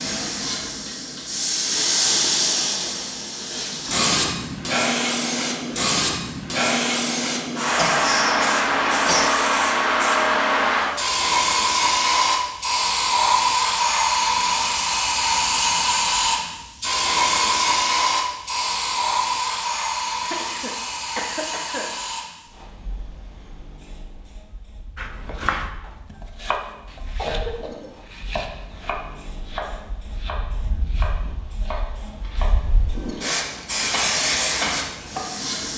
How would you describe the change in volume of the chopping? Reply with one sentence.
The volume of the chopping goes down.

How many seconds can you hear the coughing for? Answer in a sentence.
You can hear the coughing for 4 seconds altogether.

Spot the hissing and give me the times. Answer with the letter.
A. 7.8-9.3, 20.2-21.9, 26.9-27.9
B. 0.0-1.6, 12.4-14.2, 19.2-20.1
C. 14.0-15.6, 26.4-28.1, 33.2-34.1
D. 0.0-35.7
D.